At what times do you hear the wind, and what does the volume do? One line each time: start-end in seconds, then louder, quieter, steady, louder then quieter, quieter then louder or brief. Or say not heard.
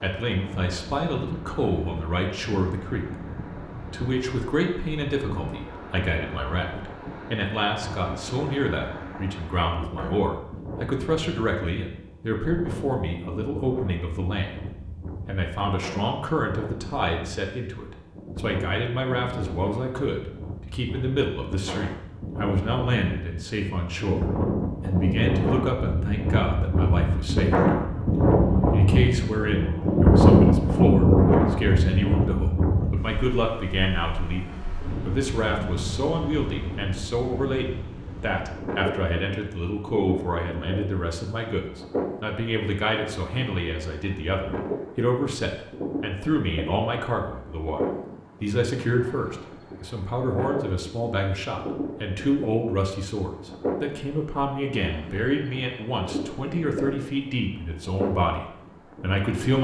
0.0-59.6 louder then quieter.